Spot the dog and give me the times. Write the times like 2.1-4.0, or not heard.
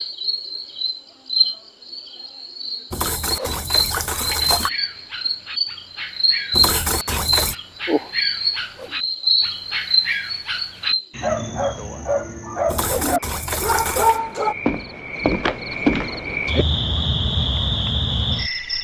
4.3-14.6.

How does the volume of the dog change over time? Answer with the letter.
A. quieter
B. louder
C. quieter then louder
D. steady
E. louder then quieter
B.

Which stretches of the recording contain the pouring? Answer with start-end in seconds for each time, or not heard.
2.9-4.7, 6.5-7.5, 12.7-14.2.